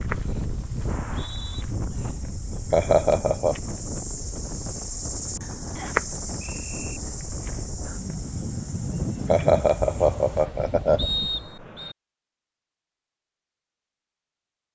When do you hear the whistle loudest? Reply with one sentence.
The loudest moment of the whistle is at 11 seconds.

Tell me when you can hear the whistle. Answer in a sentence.
The whistle can be heard from 0.8 to 1.6 s, from 5.8 to 7.0 s and from 10.9 to 11.9 s.